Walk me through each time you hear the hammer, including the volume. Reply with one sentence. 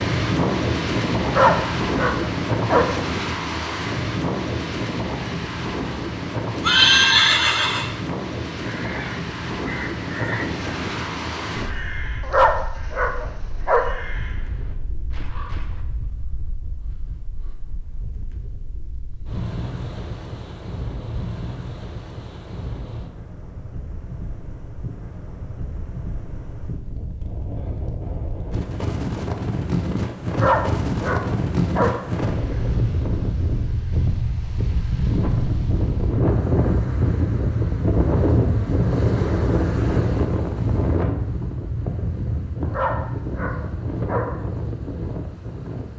The hammer can't be heard in this clip.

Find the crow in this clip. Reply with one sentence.
You can hear the crow from 8.6 to 15.8 s.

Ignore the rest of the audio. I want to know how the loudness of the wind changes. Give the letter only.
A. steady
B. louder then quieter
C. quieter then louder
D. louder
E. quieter
C.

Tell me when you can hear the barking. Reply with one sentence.
The barking can be heard from 1.2 to 2.9 s, from 12.2 to 13.8 s, from 30.3 to 31.9 s and from 42.6 to 44.2 s.